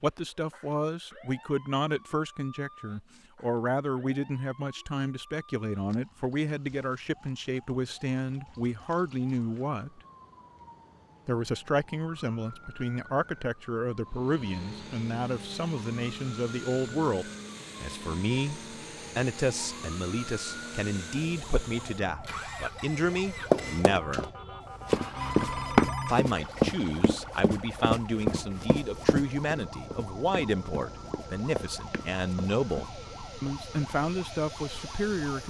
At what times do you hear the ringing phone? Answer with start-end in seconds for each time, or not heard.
25.1-26.2.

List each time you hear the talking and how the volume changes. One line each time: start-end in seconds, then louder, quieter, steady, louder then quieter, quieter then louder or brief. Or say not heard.
0.0-10.0 steady
11.2-24.3 steady
26.1-35.4 steady.